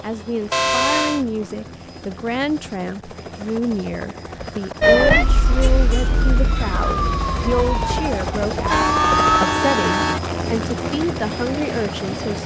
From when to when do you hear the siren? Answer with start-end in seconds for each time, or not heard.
4.8-9.3.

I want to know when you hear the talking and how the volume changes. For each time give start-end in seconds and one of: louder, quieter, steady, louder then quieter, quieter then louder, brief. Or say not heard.
0.0-12.4 steady.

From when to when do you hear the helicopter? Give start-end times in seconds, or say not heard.
0.0-12.4.